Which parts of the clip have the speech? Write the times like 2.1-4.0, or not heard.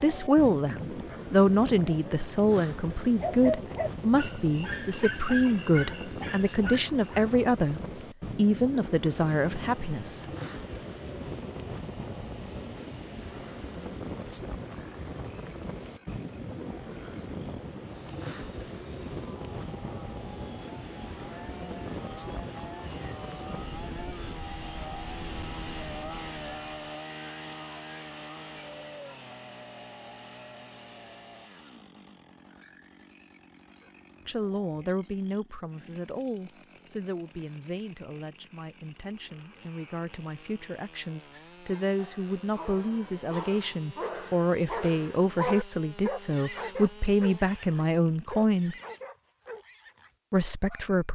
0.0-10.2, 34.2-48.8, 50.3-51.1.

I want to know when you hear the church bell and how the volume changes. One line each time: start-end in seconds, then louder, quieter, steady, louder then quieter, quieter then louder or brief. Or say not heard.
not heard.